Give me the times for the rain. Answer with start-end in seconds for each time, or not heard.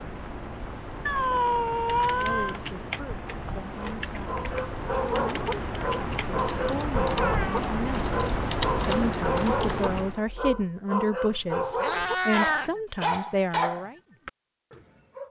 0.0-10.2.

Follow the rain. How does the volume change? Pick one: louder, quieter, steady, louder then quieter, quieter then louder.
louder.